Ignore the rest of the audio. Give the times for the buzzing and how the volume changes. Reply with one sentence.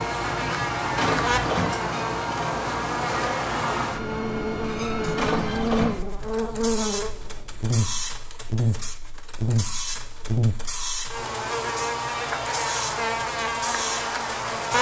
The buzzing can be heard from 0.0 to 14.7 s, at a steady volume.